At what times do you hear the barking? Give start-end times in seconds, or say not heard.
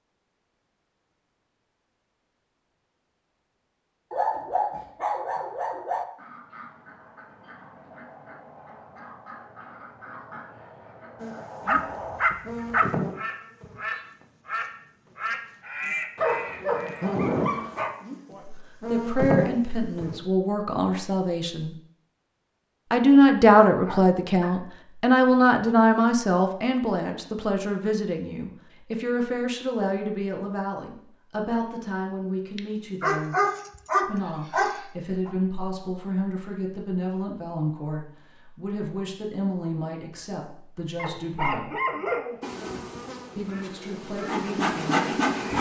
4.1-6.0, 11.7-12.9, 16.1-17.9, 23.9-24.5, 32.5-35.3, 41.0-43.0.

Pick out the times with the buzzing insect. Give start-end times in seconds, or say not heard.
11.2-20.2, 42.4-45.5.